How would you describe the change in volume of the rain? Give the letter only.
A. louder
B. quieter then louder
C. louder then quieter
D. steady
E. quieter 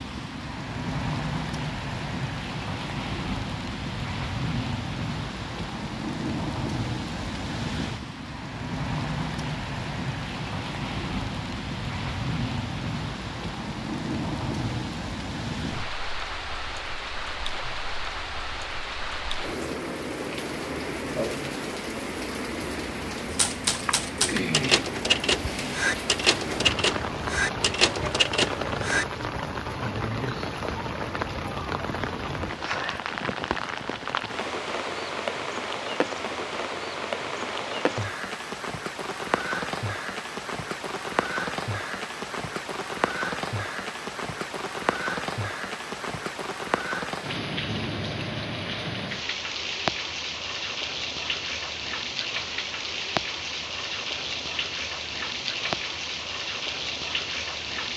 D.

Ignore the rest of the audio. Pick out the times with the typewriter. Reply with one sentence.
You can hear the typewriter from 23.3 to 29.1 s.